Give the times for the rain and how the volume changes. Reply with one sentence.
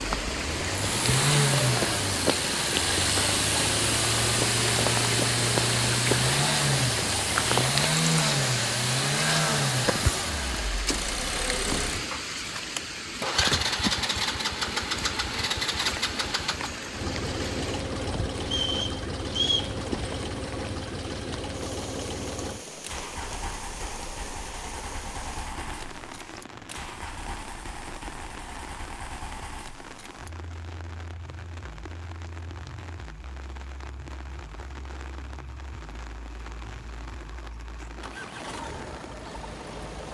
You can hear the rain from 0.0 to 40.1 s, getting quieter.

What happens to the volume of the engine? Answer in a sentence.
The loudness of the engine goes down.